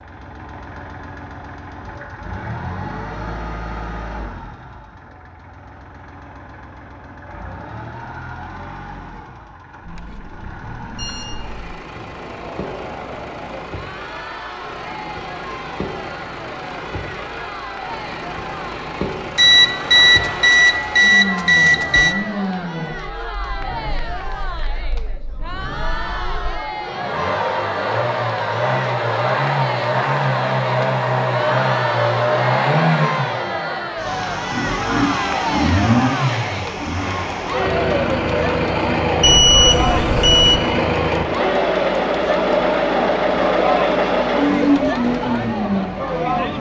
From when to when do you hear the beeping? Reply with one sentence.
The beeping can be heard from 10.9 to 11.6 s, from 19.4 to 22.1 s and from 39.2 to 40.6 s.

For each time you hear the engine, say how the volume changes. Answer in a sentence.
The engine can be heard from 0.0 to 46.5 s, getting louder.